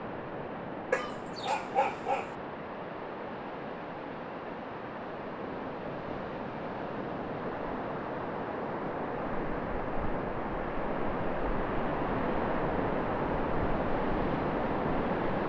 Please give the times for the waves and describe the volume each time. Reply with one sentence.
You can hear the waves from 0.0 to 15.4 s, getting louder.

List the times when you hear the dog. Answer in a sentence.
You can hear the dog from 0.9 to 2.4 s.